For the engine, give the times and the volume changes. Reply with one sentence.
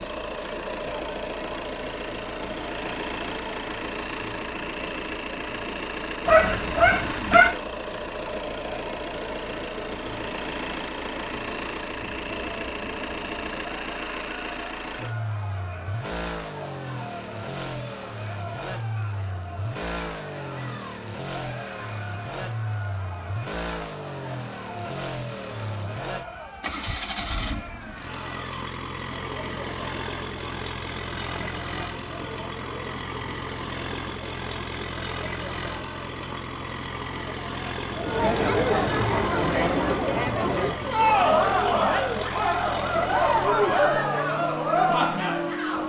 The engine can be heard from 0.0 to 45.8 s, at a steady volume.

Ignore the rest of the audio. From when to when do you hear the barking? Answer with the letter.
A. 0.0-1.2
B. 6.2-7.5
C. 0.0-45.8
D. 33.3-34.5
B.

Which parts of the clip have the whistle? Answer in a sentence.
You can't hear the whistle here.